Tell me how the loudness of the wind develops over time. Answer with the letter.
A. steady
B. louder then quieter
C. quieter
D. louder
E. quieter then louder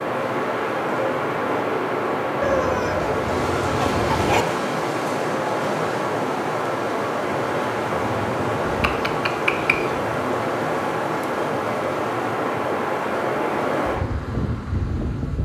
A.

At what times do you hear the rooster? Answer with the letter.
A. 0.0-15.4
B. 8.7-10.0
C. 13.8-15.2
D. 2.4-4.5
D.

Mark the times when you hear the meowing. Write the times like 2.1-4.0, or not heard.
8.7-10.0.